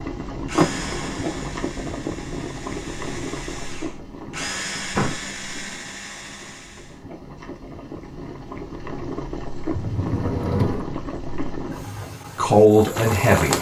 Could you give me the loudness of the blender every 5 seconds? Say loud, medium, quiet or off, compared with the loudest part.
loud, loud, off.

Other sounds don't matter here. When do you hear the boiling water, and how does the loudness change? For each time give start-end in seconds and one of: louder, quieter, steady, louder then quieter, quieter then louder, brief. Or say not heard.
0.0-13.5 quieter then louder.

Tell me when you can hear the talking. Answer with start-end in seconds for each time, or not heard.
12.3-13.5.